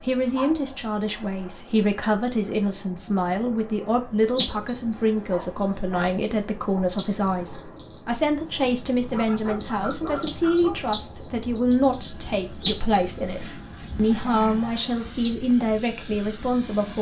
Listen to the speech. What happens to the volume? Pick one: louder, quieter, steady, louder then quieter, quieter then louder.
steady.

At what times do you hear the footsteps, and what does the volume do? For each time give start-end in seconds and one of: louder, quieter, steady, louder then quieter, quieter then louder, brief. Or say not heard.
not heard.